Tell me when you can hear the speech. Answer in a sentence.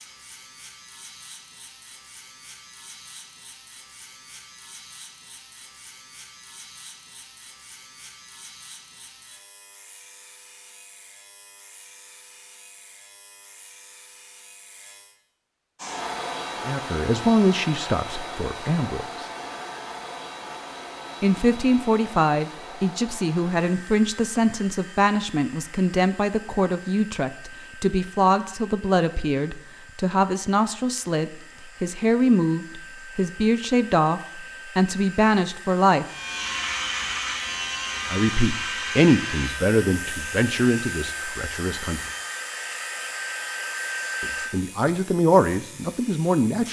The speech can be heard from 16.6 to 19.2 s, from 21.2 to 36.0 s, from 38.1 to 42.0 s and from 44.2 to 46.6 s.